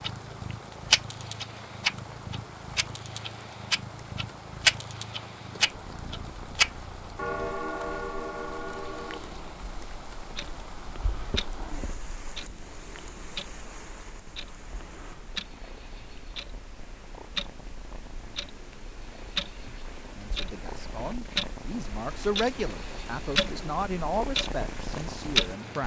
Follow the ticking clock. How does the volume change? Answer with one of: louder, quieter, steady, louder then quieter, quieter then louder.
quieter then louder.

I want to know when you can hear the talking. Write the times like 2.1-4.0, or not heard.
20.1-25.8.